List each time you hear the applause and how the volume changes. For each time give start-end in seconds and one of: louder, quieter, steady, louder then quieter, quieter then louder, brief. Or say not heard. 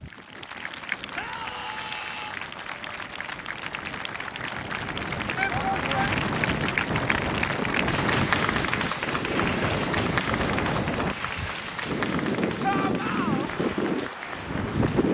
0.0-15.0 louder then quieter.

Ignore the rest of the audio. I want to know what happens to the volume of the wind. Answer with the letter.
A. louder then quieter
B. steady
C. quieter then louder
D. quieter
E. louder
E.